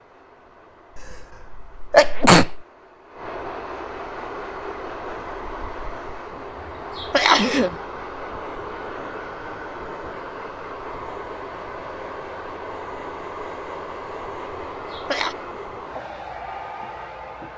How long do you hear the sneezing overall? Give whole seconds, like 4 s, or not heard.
3 s.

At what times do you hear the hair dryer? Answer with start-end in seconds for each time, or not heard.
0.0-17.5.